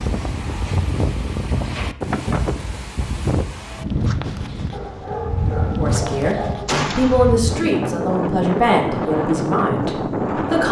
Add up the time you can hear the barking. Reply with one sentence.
The barking can be heard for 2 seconds in total.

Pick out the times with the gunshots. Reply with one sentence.
You can hear the gunshots from 6.7 to 7.3 s.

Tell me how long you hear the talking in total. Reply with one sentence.
You can hear the talking for 5 seconds altogether.